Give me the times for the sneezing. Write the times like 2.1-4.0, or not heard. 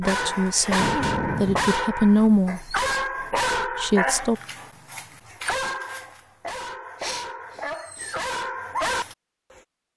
0.2-1.8, 7.0-8.2.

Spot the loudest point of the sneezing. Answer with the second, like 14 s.
1 s.